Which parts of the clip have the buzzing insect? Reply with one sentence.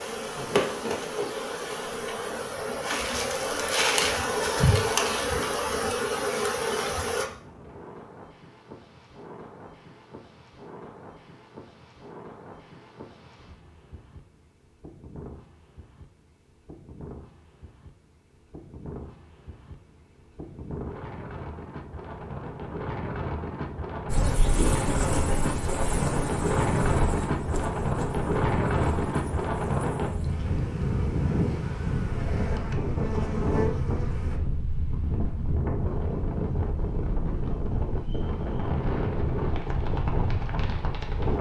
The buzzing insect can be heard from 0.0 to 7.2 s and from 24.1 to 34.4 s.